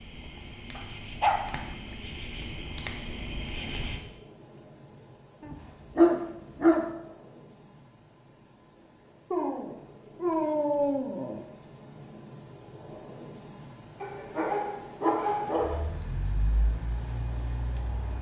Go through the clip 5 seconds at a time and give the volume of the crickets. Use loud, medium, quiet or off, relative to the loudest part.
loud, medium, loud, loud.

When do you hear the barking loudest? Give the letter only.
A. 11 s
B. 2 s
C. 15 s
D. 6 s
D.